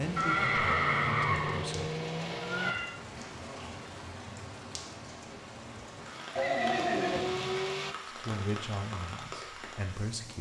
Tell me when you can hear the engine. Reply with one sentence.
The engine can be heard from 0.0 to 2.8 s and from 6.1 to 8.0 s.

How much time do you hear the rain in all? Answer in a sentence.
You can hear the rain for 10 seconds altogether.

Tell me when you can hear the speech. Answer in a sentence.
You can hear the speech from 0.0 to 1.9 s and from 8.1 to 10.3 s.